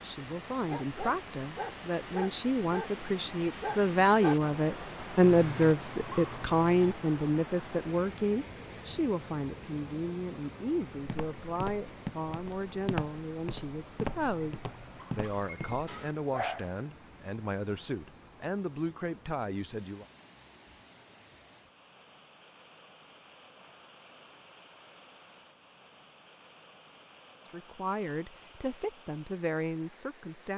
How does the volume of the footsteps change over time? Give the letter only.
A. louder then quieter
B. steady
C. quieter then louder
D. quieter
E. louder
C.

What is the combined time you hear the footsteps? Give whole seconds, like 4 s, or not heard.
5 s.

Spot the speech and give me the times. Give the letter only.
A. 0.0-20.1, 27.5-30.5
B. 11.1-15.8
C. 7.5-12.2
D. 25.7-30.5
A.